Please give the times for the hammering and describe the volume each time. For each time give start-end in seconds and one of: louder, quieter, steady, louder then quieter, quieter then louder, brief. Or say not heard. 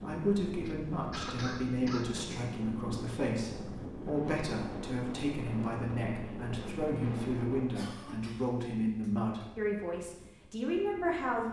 not heard.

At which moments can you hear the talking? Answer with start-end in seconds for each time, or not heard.
0.0-11.4.